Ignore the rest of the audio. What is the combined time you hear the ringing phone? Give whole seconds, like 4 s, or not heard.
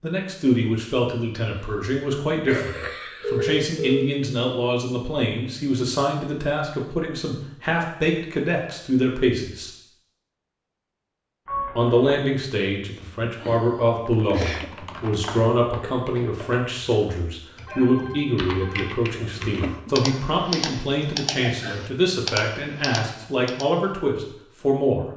3 s.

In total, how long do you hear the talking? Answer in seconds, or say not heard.
23 s.